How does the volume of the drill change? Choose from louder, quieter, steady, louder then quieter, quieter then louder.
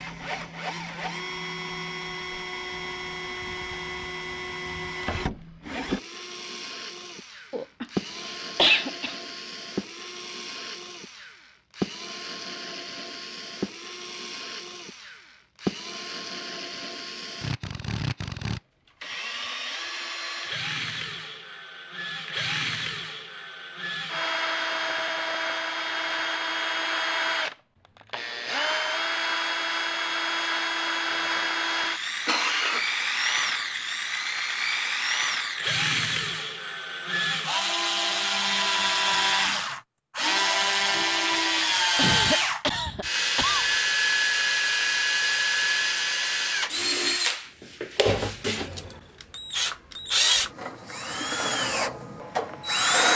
louder.